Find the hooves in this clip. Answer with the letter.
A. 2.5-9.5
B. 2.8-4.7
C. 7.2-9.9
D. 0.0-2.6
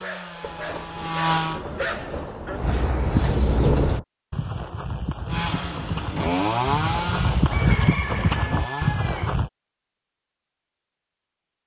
A.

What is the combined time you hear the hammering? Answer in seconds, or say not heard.
not heard.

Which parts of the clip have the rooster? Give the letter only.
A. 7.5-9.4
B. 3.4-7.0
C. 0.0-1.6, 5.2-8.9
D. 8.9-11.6
A.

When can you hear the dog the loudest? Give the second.
2 s.